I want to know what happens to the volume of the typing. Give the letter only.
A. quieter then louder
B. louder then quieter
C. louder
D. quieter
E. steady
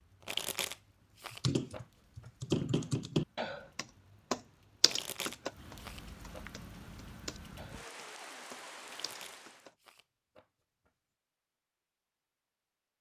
D.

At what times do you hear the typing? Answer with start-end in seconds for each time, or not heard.
1.3-9.8.